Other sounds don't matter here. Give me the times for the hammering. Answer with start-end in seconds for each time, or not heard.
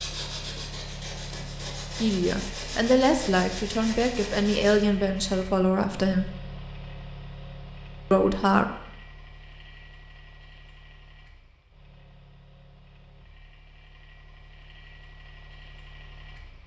not heard.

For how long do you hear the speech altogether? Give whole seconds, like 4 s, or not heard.
5 s.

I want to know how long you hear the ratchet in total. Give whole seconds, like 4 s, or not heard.
not heard.